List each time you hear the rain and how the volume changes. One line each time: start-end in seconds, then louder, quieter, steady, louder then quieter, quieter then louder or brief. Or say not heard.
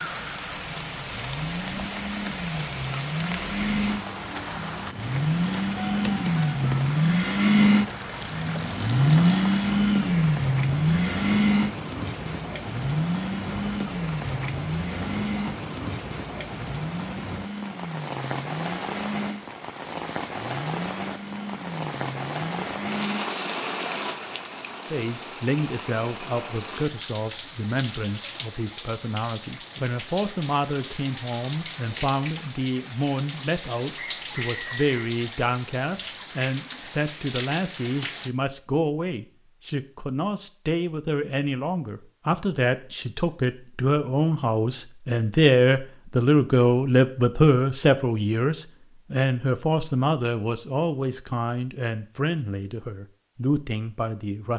0.0-38.3 steady.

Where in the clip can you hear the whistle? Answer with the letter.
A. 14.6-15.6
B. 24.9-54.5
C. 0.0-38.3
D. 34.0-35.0
D.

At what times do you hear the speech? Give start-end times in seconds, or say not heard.
24.9-54.5.